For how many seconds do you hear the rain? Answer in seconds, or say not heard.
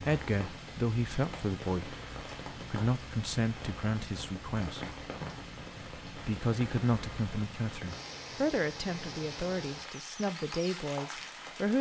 12 s.